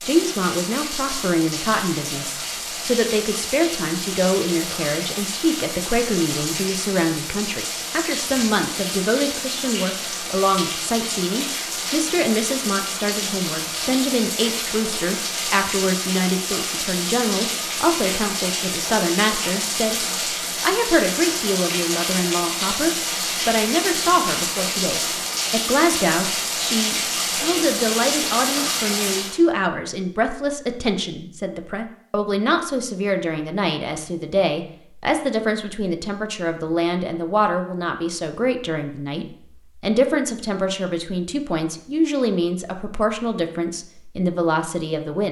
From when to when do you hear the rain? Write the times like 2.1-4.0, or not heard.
0.0-29.4.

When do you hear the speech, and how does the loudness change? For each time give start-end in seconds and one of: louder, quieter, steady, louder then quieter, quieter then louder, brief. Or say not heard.
0.0-45.2 steady.